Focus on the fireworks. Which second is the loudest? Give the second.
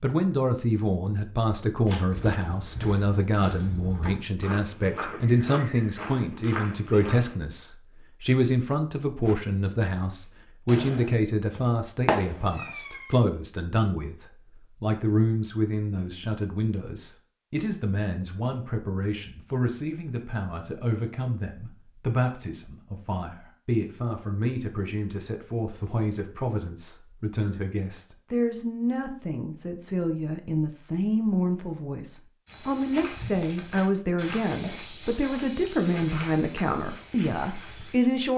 12 s.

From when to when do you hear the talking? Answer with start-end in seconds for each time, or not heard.
0.0-38.3.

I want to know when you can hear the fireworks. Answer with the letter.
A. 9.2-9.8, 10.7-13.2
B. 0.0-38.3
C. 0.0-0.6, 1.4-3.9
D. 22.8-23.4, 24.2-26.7
A.